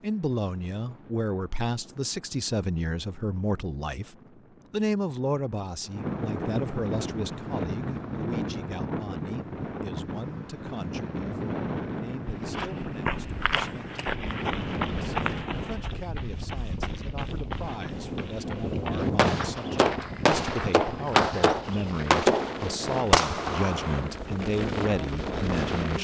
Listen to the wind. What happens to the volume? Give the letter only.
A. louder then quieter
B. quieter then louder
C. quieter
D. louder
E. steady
D.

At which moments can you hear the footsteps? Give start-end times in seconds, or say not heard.
12.2-22.2.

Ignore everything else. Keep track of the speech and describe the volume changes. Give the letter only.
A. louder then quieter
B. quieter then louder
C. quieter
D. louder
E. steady
B.